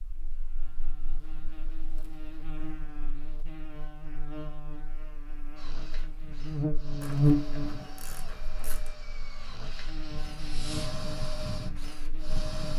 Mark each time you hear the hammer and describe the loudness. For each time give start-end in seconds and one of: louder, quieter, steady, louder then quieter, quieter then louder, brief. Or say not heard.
not heard.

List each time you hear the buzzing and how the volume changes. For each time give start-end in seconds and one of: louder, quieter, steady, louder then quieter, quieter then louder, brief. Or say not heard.
0.0-12.7 louder then quieter.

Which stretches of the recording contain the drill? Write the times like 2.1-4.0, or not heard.
5.5-12.7.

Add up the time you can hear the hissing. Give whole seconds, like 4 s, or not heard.
2 s.